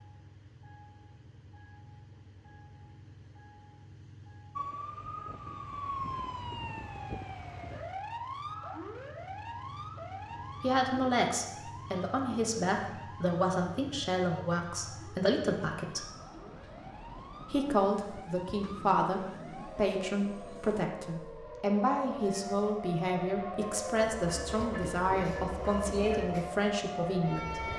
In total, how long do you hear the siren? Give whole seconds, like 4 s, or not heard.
23 s.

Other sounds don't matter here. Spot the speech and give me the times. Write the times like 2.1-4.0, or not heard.
10.6-16.1, 17.5-27.6.